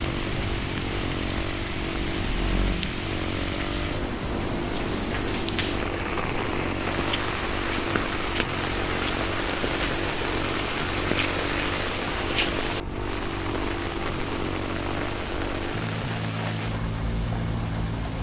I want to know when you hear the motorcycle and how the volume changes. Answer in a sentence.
The motorcycle can be heard from 0.0 to 18.1 s, at a steady volume.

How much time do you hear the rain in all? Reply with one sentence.
You can hear the rain for 18 seconds altogether.